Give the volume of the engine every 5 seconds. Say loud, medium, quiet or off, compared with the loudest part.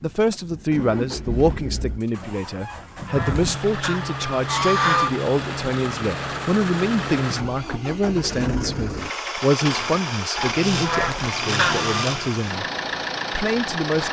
medium, loud, loud.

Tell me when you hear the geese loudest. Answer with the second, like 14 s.
5 s.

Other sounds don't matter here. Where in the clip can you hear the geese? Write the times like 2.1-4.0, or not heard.
2.6-5.1, 10.3-12.1.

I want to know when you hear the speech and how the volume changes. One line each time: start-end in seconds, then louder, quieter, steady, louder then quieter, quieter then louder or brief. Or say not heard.
0.0-12.7 steady
13.3-14.0 brief.